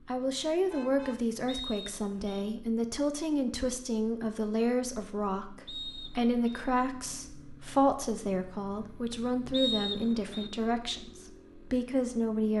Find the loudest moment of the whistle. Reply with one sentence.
The loudest moment of the whistle is at 10 seconds.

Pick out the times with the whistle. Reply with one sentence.
You can hear the whistle from 1.4 to 2.4 s, from 5.7 to 6.7 s and from 9.5 to 10.5 s.